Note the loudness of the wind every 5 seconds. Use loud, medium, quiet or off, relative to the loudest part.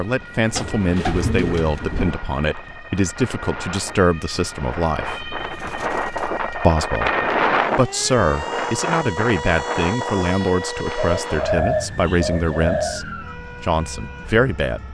quiet, loud, medium.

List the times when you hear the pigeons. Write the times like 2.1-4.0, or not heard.
0.6-2.1, 5.3-6.8, 10.9-13.0.